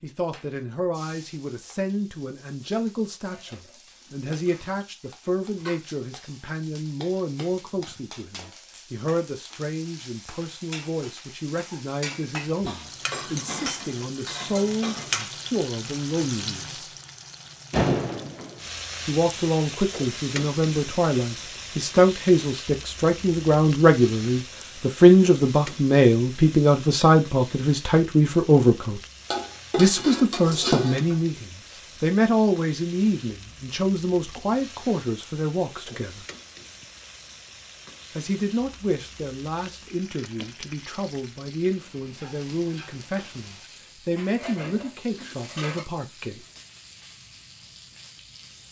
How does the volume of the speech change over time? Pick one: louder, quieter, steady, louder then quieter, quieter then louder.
louder then quieter.